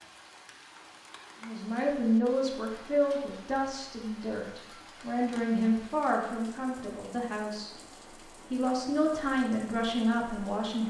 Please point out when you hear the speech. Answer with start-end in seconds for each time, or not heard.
1.4-7.8, 8.5-10.8.